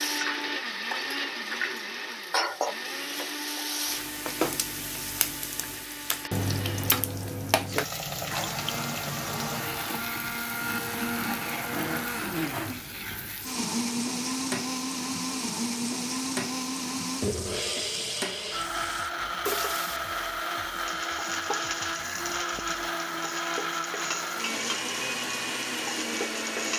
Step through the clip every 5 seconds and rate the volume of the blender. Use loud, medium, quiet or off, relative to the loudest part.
loud, medium, loud, loud, loud, loud.